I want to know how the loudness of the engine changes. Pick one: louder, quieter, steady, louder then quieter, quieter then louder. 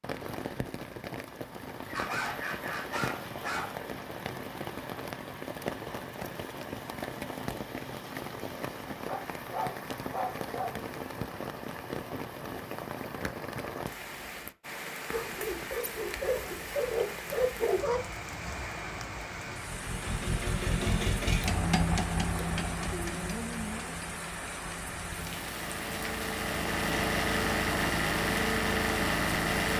quieter then louder.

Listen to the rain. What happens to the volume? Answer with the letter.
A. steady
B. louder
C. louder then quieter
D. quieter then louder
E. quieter
A.